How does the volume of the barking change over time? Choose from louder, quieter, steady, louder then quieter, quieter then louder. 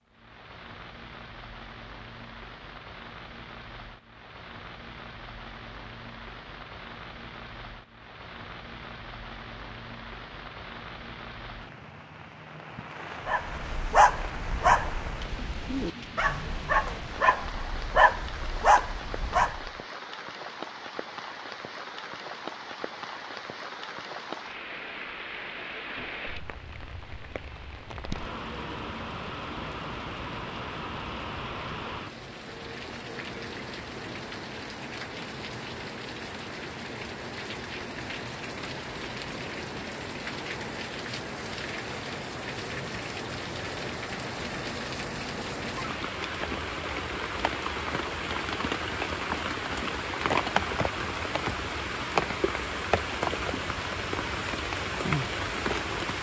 quieter then louder.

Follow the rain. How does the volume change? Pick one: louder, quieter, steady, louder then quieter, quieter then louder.
louder.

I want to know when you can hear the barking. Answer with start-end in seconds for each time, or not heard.
13.2-19.7.